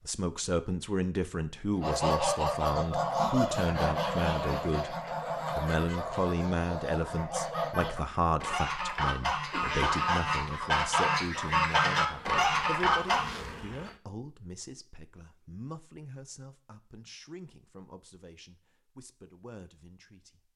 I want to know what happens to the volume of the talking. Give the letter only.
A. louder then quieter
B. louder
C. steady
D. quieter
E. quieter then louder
D.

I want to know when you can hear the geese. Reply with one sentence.
The geese can be heard from 1.8 to 13.3 s.